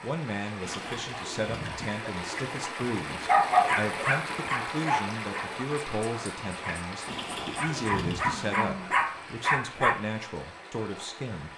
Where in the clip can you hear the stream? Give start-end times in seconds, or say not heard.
0.0-11.5.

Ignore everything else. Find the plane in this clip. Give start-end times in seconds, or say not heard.
not heard.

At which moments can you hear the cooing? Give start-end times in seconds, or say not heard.
0.6-2.6, 7.0-8.6.